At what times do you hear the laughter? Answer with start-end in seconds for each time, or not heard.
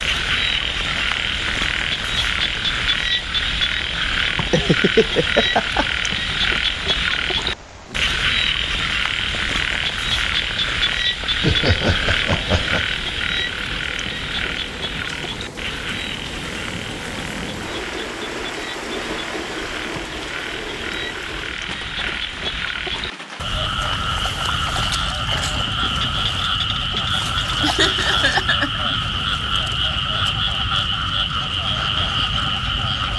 4.4-5.8, 11.4-12.8, 27.6-28.9.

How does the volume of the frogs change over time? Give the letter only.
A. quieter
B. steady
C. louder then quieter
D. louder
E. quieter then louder
E.